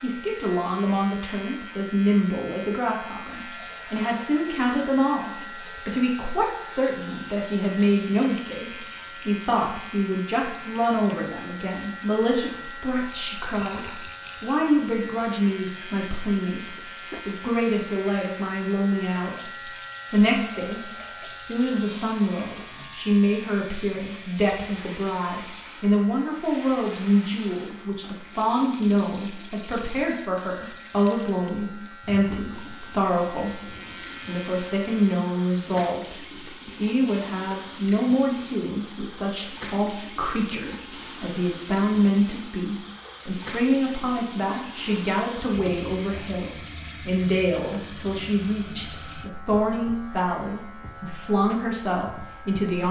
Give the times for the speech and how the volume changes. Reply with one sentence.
You can hear the speech from 0.0 to 52.8 s, at a steady volume.